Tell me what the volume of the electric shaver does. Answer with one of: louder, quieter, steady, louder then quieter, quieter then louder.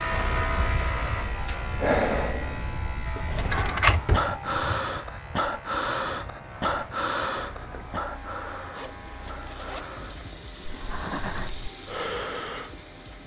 quieter.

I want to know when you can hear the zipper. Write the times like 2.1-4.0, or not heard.
0.1-0.9, 7.5-10.2.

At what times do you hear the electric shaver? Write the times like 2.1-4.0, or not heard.
0.0-13.2.